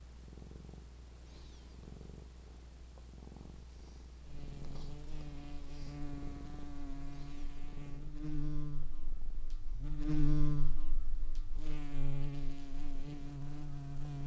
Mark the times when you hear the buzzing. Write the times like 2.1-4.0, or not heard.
4.2-14.2.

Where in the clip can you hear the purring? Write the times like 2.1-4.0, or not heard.
0.0-14.2.